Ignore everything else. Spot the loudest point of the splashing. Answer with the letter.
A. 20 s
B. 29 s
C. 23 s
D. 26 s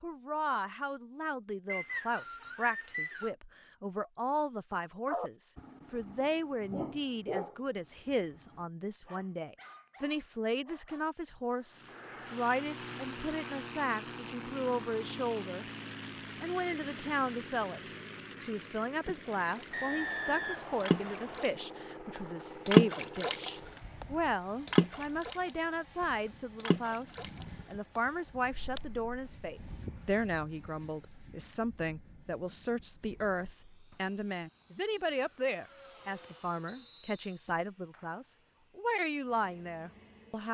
C.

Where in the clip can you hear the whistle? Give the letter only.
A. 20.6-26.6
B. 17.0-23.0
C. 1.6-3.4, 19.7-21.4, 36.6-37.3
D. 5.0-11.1
C.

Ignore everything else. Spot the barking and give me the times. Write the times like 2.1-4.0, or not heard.
5.0-11.1.